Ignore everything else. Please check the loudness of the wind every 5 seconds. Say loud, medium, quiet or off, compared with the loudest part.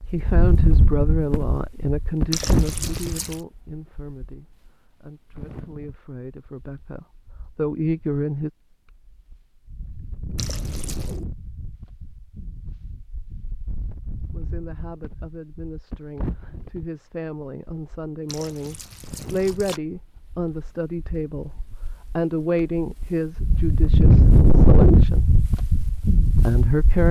medium, quiet, quiet, quiet, loud, medium.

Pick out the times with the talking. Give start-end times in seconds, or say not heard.
0.0-8.5, 14.3-25.2, 26.2-27.0.